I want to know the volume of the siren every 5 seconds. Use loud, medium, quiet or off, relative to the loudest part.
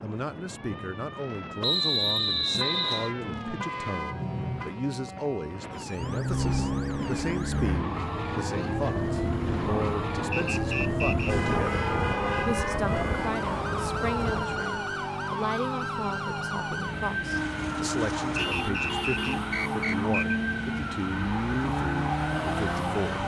medium, medium, loud, loud, loud.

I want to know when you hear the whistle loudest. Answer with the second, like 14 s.
2 s.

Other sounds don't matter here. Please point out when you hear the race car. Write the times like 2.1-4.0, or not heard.
6.0-23.2.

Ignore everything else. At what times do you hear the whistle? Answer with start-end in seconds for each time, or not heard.
1.6-3.1, 10.3-11.3, 18.4-20.4.